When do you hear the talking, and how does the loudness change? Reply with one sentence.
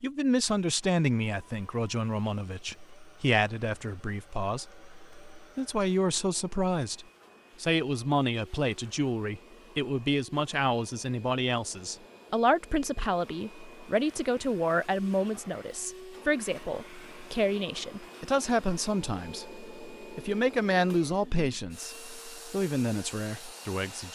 The talking can be heard from 0.0 to 24.1 s, at a steady volume.